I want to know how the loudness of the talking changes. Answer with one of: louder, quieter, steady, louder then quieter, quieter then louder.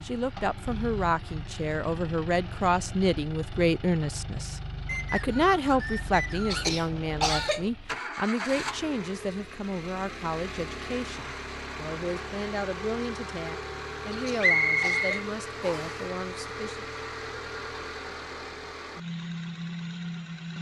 quieter.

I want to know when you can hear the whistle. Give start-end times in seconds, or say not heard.
4.8-6.7, 14.4-15.9.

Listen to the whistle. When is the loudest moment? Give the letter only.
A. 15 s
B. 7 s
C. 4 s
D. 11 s
A.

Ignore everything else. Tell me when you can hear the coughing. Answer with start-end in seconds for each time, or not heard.
6.5-7.7, 14.1-15.3.